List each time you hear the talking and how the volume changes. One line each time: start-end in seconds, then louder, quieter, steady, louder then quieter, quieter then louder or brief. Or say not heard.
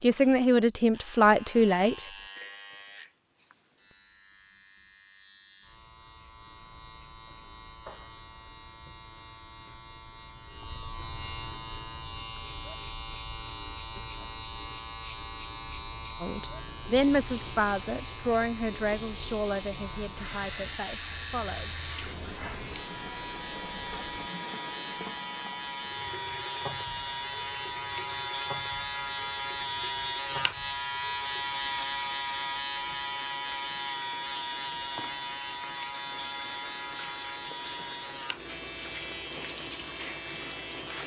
0.0-2.1 brief
16.2-21.8 quieter.